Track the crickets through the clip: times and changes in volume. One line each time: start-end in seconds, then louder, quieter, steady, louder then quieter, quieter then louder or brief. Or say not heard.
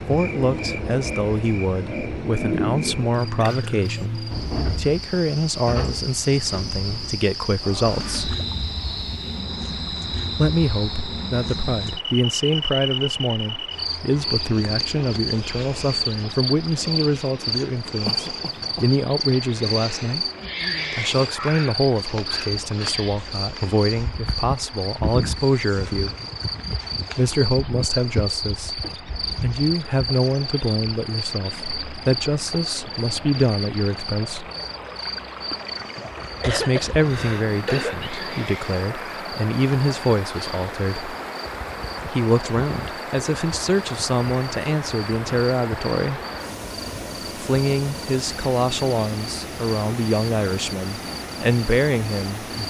0.0-52.6 quieter.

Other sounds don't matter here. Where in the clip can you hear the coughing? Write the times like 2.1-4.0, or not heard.
3.4-4.0, 18.1-18.9, 36.2-38.1.